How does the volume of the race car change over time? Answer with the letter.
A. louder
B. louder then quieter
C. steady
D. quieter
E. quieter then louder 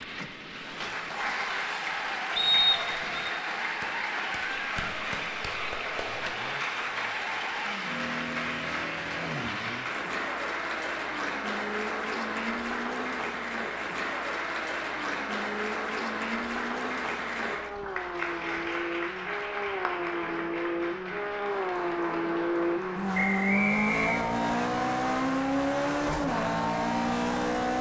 A.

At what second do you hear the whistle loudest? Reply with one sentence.
The loudest moment of the whistle is at 3 seconds.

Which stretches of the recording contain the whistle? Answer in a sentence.
You can hear the whistle from 2.4 to 3.3 s and from 23.1 to 24.6 s.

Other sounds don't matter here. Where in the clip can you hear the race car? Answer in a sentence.
You can hear the race car from 0.0 to 27.7 s.